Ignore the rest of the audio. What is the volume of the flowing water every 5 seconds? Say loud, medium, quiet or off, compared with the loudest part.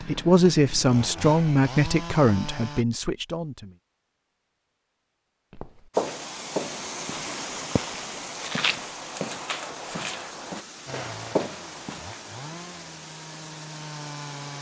off, loud, medium.